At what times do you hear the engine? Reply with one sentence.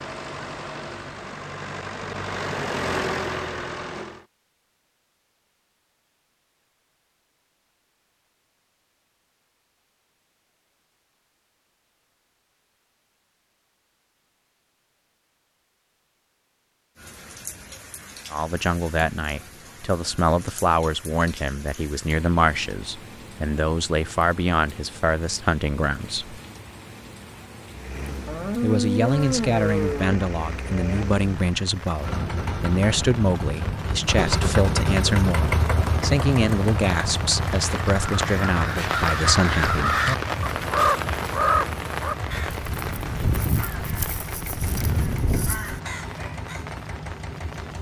The engine can be heard from 0.0 to 4.2 s and from 27.7 to 47.7 s.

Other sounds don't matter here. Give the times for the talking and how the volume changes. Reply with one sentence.
The talking can be heard from 18.3 to 26.4 s, at a steady volume; and from 28.6 to 40.0 s, at a steady volume.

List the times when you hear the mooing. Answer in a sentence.
The mooing can be heard from 28.2 to 31.1 s.